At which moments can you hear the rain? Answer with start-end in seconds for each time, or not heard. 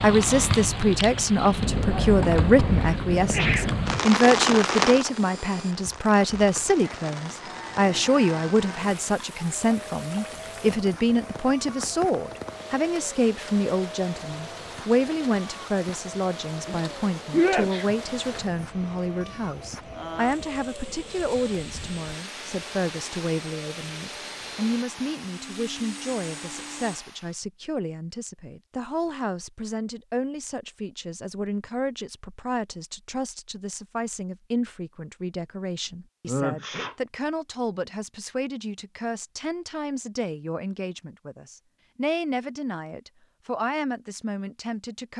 0.0-27.4.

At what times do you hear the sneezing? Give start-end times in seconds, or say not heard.
2.6-3.7, 16.6-18.4, 36.2-37.0.